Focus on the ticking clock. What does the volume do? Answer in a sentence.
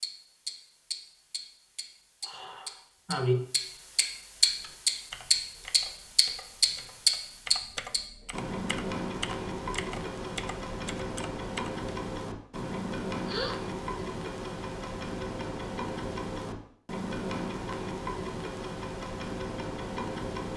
The loudness of the ticking clock goes up, then down.